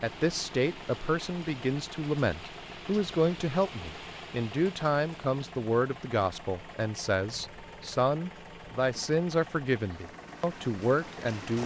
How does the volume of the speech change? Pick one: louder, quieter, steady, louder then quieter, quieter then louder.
steady.